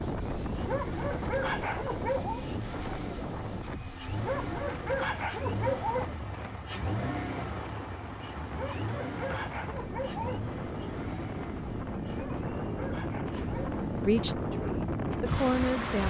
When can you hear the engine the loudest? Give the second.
7 s.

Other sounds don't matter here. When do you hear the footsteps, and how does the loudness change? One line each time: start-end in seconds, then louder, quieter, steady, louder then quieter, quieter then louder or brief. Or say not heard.
not heard.